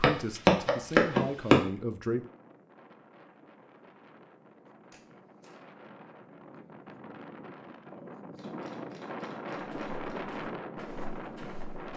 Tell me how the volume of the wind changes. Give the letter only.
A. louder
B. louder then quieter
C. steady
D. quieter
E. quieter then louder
A.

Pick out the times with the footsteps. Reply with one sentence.
You can hear the footsteps from 0.0 to 1.6 s and from 9.6 to 11.9 s.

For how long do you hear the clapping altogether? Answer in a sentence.
The clapping can't be heard in this clip.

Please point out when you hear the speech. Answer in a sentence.
You can hear the speech from 0.0 to 2.2 s.